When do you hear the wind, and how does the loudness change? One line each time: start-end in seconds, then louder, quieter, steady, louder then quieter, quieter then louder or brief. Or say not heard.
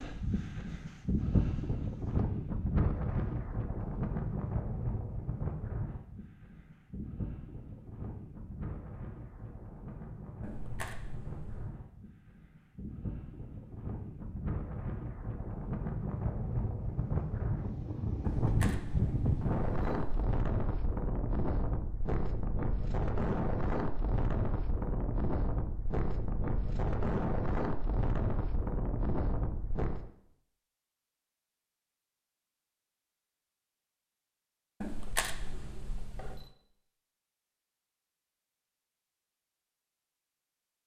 0.0-30.1 quieter then louder.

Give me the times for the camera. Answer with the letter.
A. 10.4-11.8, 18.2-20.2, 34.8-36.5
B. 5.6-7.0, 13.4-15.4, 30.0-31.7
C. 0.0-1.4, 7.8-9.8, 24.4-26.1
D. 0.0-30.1
A.